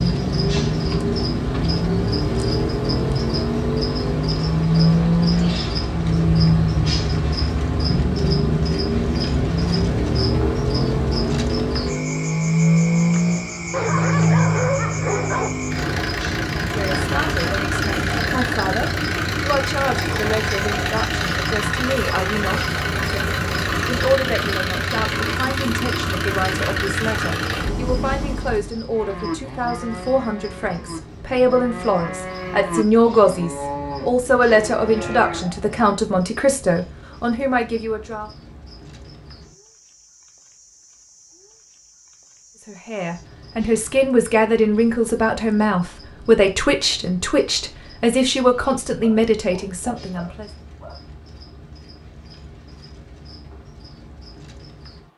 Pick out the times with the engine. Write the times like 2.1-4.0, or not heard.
0.0-28.8.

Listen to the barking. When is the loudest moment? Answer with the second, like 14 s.
15 s.